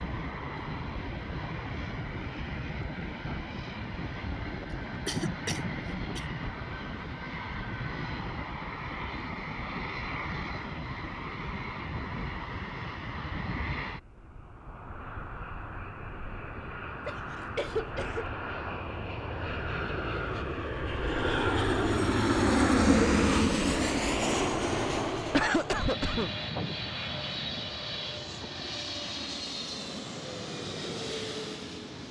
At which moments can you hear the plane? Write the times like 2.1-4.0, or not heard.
0.0-32.0.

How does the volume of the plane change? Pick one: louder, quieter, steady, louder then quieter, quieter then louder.
louder then quieter.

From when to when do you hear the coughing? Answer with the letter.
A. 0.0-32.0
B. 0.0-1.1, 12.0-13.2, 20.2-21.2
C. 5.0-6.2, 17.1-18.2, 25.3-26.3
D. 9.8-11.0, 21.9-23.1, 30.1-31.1
C.